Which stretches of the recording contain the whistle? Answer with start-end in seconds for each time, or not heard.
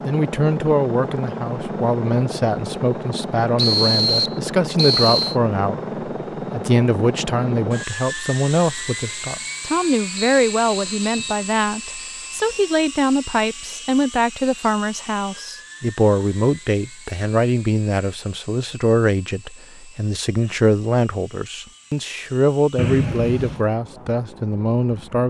3.5-5.3, 10.2-11.4, 22.8-23.6.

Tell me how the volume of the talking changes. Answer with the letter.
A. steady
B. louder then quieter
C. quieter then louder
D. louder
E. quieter
A.